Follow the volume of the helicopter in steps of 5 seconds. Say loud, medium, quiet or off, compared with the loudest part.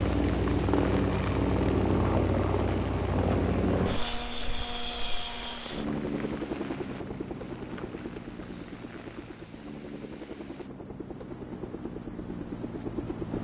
loud, medium, medium.